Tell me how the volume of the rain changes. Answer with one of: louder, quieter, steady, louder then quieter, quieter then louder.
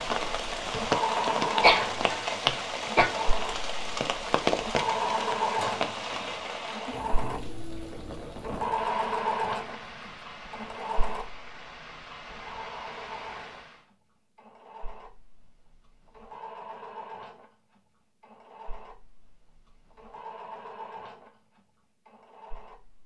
quieter.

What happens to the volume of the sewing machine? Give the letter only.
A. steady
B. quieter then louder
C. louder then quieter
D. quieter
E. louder
D.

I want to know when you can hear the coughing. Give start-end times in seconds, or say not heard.
1.6-3.1.